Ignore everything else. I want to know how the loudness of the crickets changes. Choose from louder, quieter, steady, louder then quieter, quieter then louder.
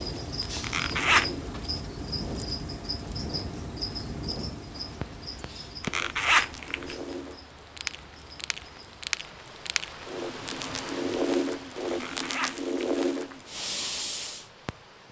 quieter.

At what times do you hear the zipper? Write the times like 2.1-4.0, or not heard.
0.6-1.3, 5.8-7.0, 11.9-13.3.